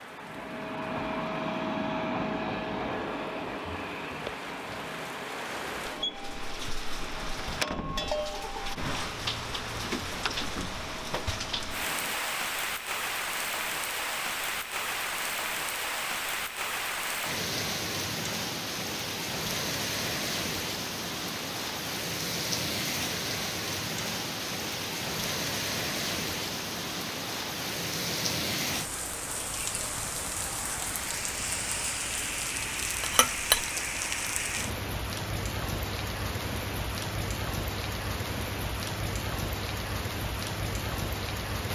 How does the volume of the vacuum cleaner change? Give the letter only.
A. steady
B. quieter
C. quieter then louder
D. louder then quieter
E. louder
B.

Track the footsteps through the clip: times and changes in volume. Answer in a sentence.
You can't hear the footsteps here.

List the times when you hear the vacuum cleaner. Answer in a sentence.
You can hear the vacuum cleaner from 0.0 to 12.2 s.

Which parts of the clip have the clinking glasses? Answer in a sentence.
You can hear the clinking glasses from 33.0 to 33.7 s.